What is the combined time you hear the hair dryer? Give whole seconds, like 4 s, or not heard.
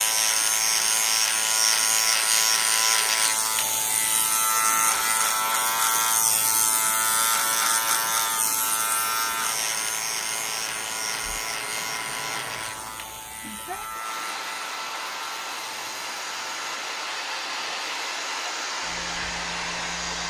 20 s.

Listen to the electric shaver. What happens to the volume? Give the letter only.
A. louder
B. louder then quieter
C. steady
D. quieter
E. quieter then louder
D.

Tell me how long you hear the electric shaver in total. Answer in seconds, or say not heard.
20 s.